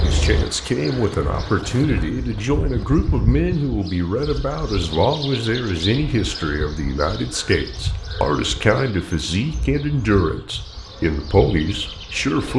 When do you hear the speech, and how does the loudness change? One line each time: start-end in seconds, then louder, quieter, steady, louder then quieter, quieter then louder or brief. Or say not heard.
0.0-12.5 steady.